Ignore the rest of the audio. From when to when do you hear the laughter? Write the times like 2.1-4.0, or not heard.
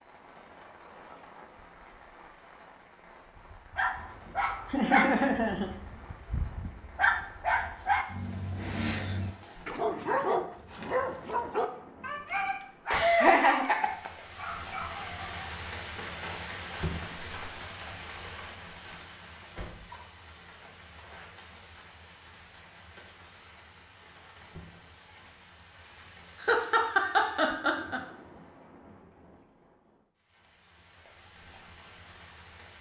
4.7-5.7, 12.9-14.1, 26.4-28.0.